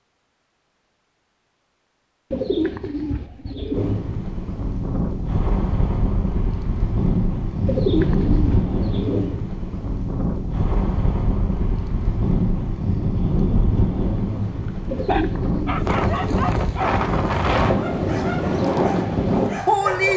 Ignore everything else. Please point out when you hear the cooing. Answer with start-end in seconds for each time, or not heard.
2.3-4.0, 7.7-9.4, 14.8-16.4.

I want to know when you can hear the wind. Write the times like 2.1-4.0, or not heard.
3.7-20.1.